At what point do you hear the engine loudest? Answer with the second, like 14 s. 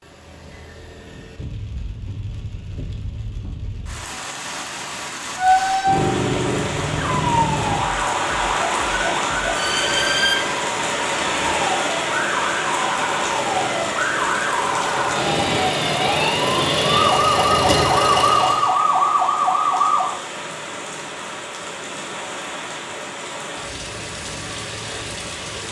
18 s.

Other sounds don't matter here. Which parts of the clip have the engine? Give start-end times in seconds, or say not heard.
13.1-18.8.